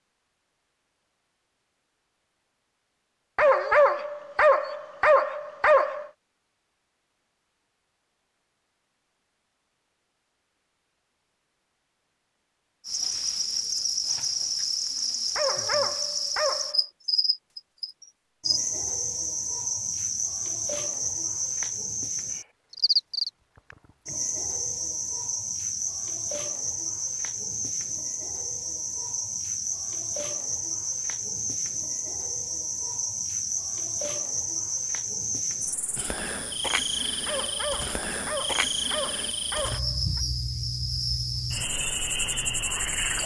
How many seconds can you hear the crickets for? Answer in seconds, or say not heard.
30 s.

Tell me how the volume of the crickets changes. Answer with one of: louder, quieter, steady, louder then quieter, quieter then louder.
steady.